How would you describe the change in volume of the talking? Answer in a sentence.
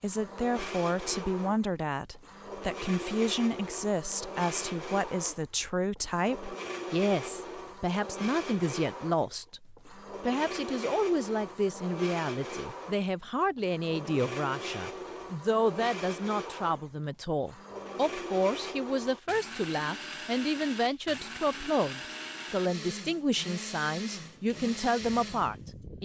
The loudness of the talking stays about the same.